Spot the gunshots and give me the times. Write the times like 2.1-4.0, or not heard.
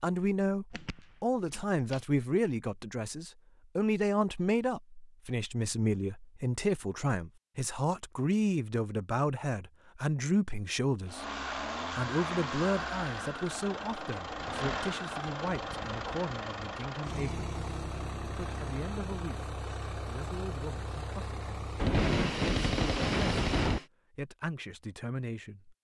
0.7-2.0, 21.8-23.8.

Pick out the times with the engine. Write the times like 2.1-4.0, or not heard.
11.1-23.9.